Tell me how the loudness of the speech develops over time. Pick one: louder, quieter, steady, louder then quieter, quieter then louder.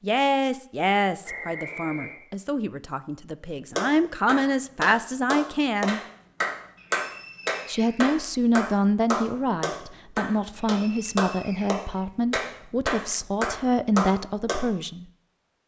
steady.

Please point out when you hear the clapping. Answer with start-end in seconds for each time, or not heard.
3.8-14.6.